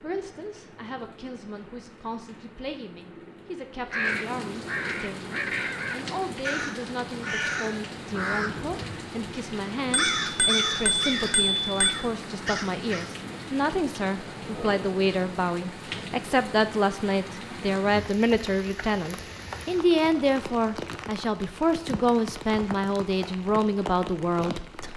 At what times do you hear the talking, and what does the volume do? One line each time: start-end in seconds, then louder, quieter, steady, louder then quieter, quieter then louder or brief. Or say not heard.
0.0-24.9 louder.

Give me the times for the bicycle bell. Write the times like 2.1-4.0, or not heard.
9.9-11.9.